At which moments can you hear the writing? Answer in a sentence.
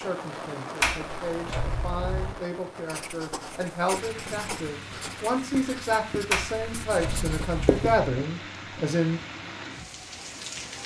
The writing can be heard from 2.9 to 8.0 s.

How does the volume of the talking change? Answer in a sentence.
The volume of the talking goes up.